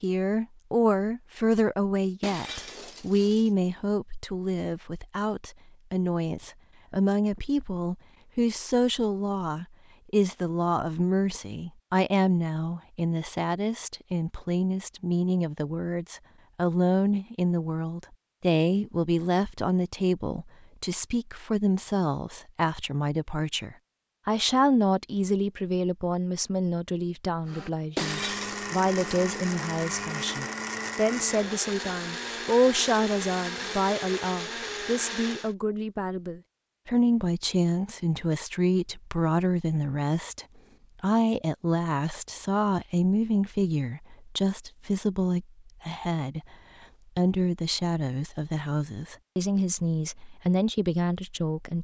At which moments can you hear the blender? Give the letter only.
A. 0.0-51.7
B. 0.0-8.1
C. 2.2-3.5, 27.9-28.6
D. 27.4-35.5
D.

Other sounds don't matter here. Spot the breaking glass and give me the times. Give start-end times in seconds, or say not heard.
2.2-3.5, 27.9-28.6.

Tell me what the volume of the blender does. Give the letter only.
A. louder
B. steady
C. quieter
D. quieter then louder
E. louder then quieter
B.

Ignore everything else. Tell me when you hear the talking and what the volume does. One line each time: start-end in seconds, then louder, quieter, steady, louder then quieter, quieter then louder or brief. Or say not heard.
0.0-51.7 steady.